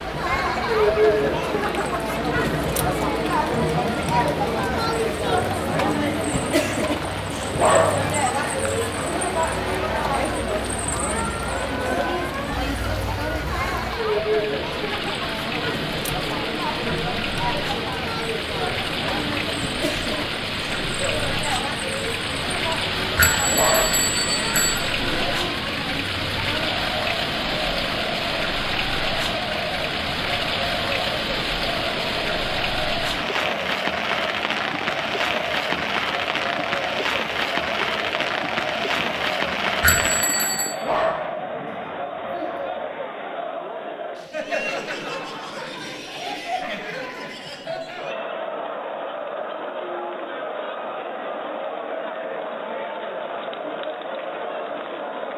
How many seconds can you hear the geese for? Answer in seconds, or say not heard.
not heard.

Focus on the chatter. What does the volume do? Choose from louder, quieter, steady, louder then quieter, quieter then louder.
quieter.